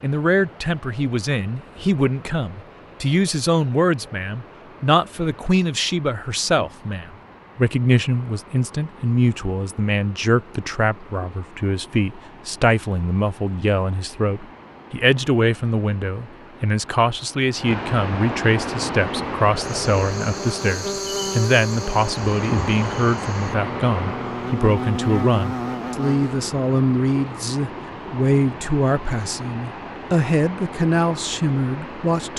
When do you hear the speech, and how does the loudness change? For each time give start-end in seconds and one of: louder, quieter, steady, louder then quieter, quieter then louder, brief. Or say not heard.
0.0-32.3 steady.